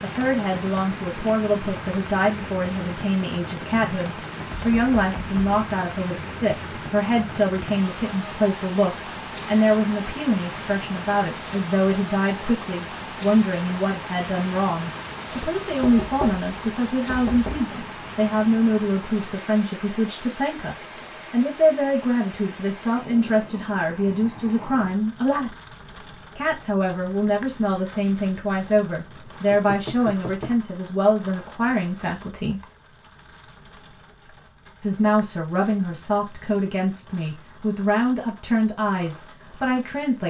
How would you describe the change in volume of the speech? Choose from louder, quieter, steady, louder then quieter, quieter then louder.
steady.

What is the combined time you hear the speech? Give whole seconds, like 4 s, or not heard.
37 s.